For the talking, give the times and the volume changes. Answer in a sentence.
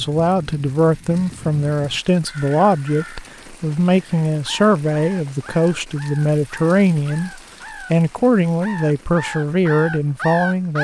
You can hear the talking from 0.0 to 10.7 s, at a steady volume.